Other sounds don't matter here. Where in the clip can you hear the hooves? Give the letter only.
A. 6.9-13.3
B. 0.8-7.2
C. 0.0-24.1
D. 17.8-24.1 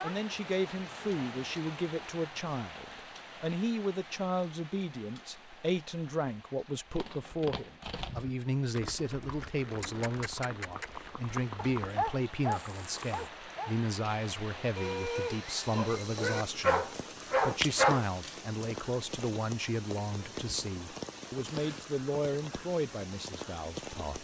A.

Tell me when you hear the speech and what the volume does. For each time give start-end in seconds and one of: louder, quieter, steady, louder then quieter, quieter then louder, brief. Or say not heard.
0.0-24.1 steady.